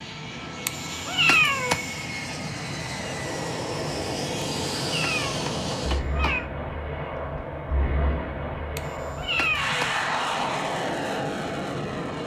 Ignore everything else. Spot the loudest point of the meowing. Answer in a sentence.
The loudest moment of the meowing is at 1 second.